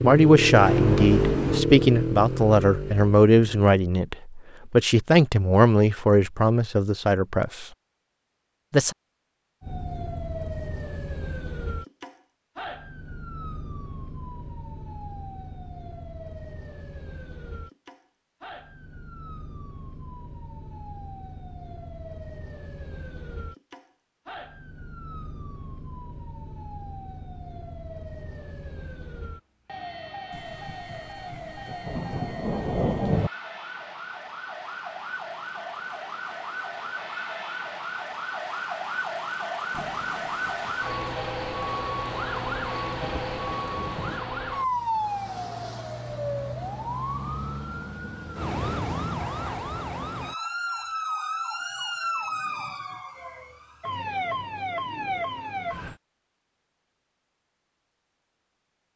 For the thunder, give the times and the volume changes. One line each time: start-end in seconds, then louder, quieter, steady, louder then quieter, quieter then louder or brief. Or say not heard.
0.6-1.6 brief
30.3-33.3 brief
39.7-44.2 louder.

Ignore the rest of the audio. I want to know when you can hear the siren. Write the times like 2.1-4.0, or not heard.
9.6-56.0.